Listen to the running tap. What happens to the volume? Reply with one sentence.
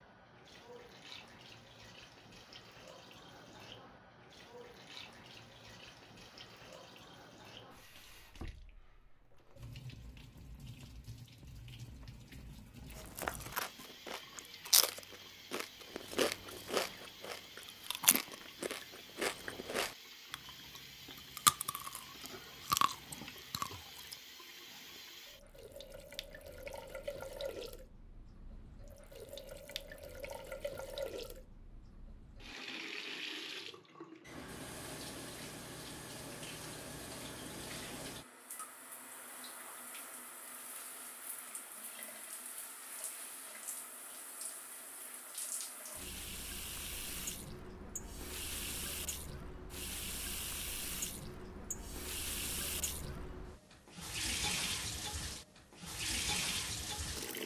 The loudness of the running tap goes up.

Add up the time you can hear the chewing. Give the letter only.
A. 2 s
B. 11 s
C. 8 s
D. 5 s
B.